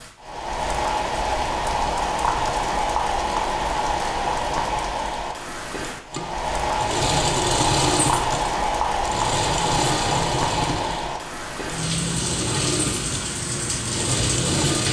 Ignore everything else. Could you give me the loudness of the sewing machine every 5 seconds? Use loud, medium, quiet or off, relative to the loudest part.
off, loud, loud.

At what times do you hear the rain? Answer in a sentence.
The rain can be heard from 0.0 to 14.8 s.